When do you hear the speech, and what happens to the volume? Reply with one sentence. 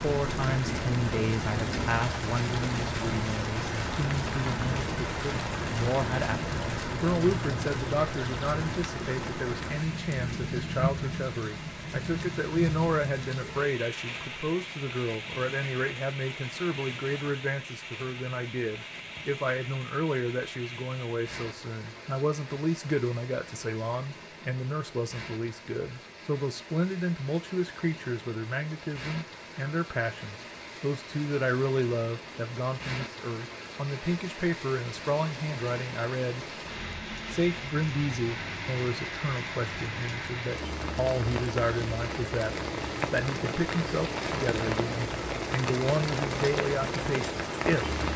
The speech can be heard from 0.0 to 36.5 s, at a steady volume; and from 37.3 to 48.0 s, at a steady volume.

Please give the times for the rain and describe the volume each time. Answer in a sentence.
The rain can be heard from 0.0 to 48.1 s, getting quieter then louder.